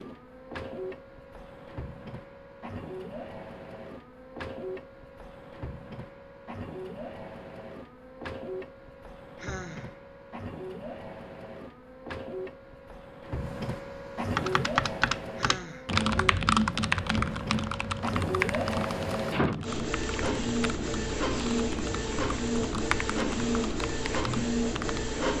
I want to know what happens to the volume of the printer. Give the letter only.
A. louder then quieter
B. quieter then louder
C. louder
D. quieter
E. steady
C.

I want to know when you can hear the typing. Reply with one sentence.
The typing can be heard from 14.3 to 25.1 s.